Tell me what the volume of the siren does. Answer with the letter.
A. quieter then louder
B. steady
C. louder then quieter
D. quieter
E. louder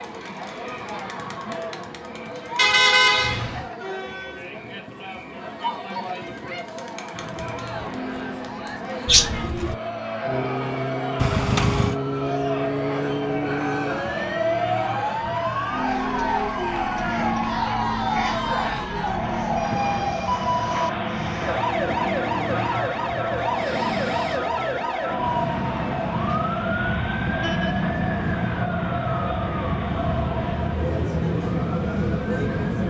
B.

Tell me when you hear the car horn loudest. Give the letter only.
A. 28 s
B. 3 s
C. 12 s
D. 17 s
B.